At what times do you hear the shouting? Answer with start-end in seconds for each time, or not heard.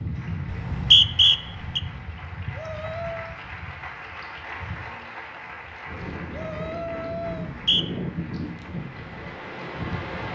2.5-3.4, 6.3-7.5.